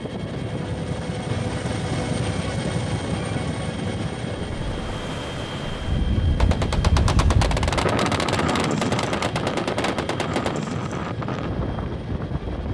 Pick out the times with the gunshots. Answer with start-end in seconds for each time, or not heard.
6.3-10.7.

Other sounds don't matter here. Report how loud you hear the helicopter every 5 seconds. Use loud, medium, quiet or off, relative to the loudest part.
loud, medium, medium.